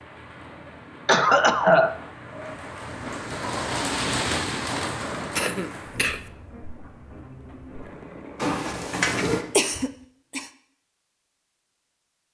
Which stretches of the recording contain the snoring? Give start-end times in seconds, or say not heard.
not heard.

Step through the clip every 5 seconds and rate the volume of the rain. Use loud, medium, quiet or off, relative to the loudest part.
loud, medium, off.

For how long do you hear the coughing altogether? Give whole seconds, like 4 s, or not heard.
3 s.